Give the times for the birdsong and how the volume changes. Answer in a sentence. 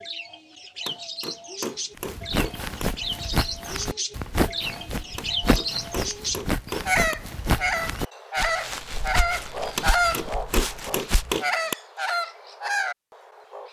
The birdsong can be heard from 0.0 to 13.6 s, getting louder.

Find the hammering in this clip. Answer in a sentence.
You can hear the hammering from 0.8 to 2.9 s, from 5.2 to 7.2 s and from 9.8 to 11.8 s.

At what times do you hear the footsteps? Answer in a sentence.
The footsteps can be heard from 1.9 to 11.4 s.